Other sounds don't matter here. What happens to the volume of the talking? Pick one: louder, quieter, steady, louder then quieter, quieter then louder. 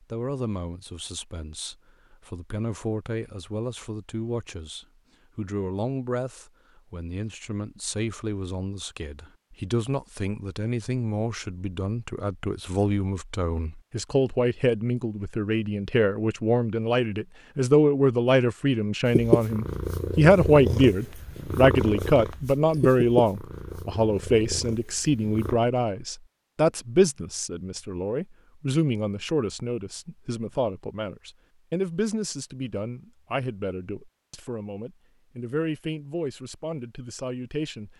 louder then quieter.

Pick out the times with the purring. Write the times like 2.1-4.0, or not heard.
19.1-25.6.